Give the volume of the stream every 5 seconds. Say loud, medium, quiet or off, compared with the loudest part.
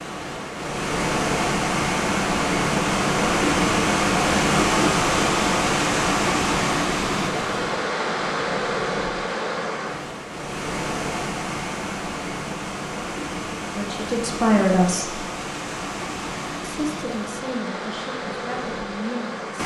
loud, loud, medium, medium.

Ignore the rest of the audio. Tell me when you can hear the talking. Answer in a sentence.
The talking can be heard from 13.8 to 15.2 s and from 16.6 to 19.4 s.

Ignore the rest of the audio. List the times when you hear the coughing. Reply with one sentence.
The coughing can't be heard in this clip.